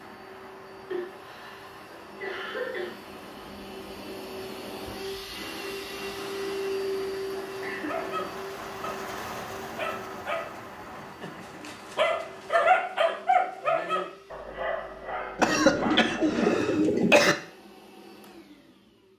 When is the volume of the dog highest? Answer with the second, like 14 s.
13 s.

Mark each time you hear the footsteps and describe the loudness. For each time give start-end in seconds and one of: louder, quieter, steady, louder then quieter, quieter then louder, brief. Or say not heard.
not heard.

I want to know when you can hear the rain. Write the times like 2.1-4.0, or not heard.
0.0-12.7.